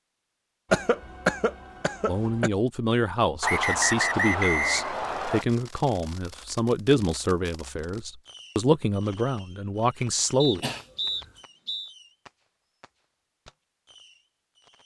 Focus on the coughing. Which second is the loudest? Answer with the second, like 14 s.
1 s.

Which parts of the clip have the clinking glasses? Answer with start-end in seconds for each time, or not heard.
not heard.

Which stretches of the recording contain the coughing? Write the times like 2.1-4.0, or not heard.
0.7-2.5, 10.6-11.3.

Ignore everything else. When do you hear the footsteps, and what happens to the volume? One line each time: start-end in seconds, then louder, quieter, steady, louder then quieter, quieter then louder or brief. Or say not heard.
not heard.